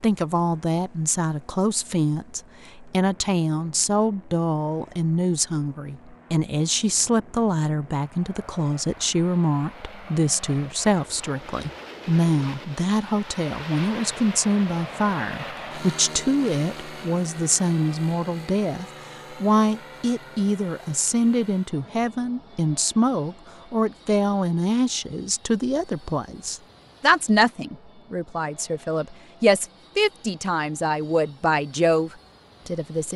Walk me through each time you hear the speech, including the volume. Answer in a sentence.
You can hear the speech from 0.0 to 33.1 s, at a steady volume.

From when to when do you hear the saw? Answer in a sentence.
The saw can't be heard in this clip.